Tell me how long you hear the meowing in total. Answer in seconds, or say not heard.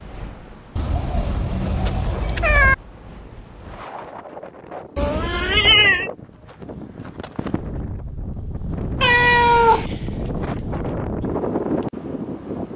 4 s.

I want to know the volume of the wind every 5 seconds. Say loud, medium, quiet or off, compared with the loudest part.
quiet, medium, loud.